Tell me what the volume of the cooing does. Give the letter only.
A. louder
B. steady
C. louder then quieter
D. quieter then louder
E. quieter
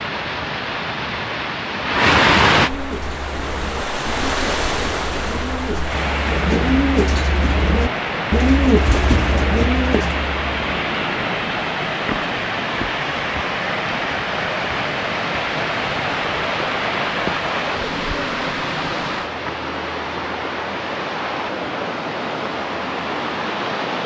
A.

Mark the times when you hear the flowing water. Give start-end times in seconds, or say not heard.
0.0-24.0.